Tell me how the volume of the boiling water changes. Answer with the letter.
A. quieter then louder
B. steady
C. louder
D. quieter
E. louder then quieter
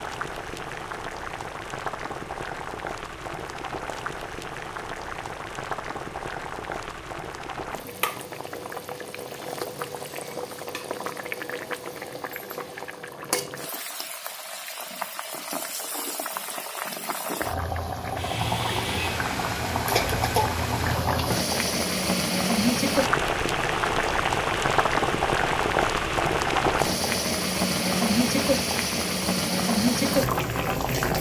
C.